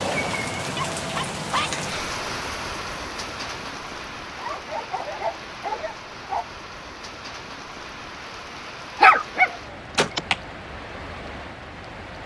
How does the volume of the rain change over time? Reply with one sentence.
The volume of the rain goes down.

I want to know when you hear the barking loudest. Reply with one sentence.
The loudest moment of the barking is at 9 seconds.